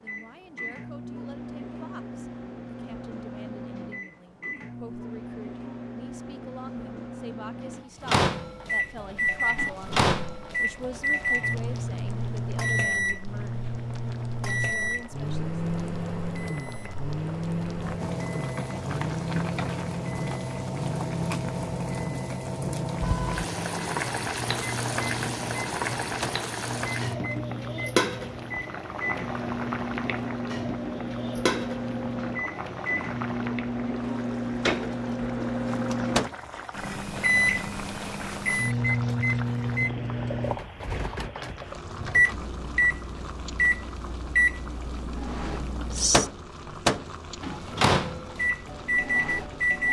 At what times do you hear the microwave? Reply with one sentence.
The microwave can be heard from 0.0 to 49.8 s.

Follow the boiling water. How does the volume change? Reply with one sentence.
The loudness of the boiling water goes up, then down.